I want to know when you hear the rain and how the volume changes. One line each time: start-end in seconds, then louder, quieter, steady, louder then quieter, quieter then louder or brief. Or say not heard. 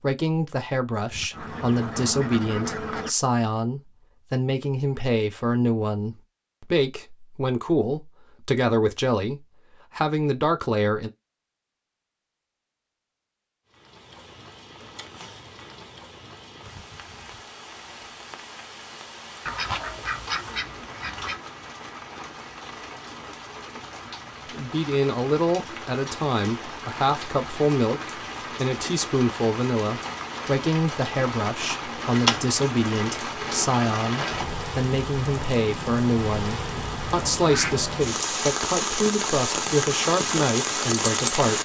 13.7-41.6 louder.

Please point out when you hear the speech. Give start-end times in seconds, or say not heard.
0.0-11.1, 24.5-41.6.